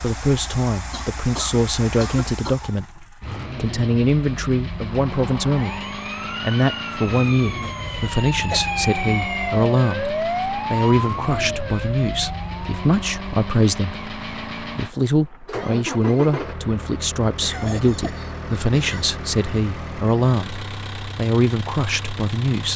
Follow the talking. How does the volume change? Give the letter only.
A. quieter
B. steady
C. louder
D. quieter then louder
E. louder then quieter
B.